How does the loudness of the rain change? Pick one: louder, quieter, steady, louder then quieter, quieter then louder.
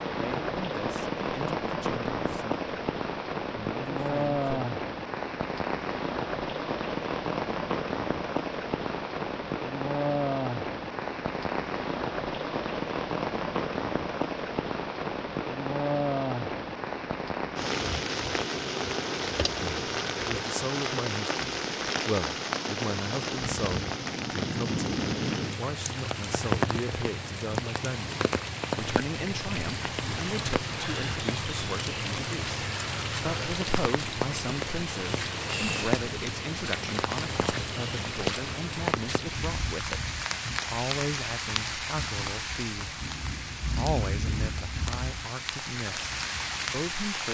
steady.